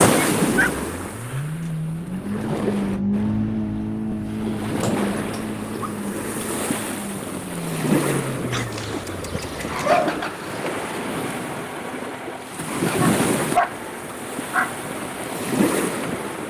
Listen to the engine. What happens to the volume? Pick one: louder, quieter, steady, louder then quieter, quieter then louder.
quieter.